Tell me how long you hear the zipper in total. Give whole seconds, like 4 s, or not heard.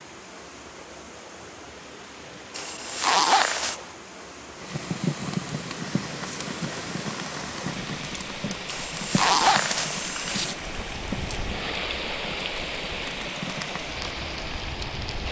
3 s.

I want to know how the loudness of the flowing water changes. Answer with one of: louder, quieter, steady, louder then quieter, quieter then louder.
louder.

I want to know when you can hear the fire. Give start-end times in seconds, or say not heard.
4.5-15.2.